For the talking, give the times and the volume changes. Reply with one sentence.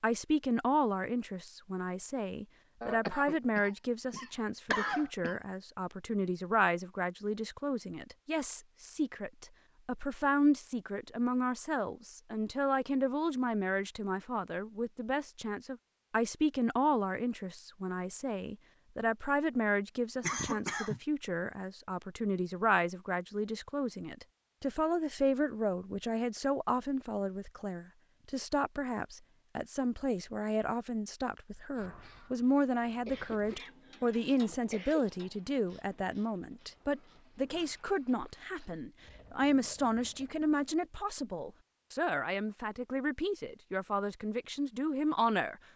You can hear the talking from 0.0 to 45.5 s, at a steady volume.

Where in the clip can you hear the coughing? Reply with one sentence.
You can hear the coughing from 2.8 to 5.3 s, from 20.2 to 21.0 s and from 33.0 to 35.0 s.